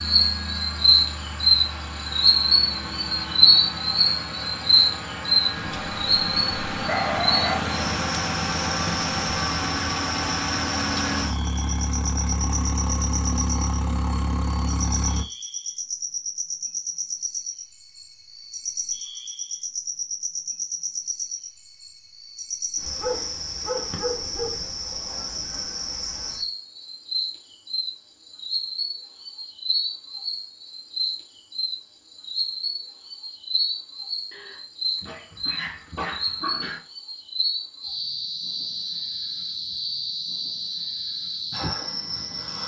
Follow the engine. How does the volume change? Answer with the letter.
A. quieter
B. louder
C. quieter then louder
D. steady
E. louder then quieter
B.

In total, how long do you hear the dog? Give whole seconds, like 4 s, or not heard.
6 s.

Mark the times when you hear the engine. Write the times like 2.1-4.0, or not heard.
0.0-15.2.